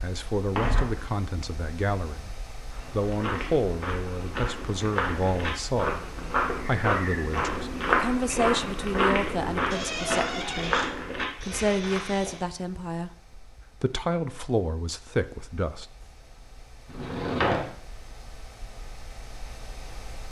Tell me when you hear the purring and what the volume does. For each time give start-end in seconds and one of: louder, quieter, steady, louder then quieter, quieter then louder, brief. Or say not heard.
not heard.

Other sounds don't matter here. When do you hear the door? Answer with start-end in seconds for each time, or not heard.
0.6-1.0, 9.7-10.9, 16.9-17.6.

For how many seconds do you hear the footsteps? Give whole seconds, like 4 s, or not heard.
10 s.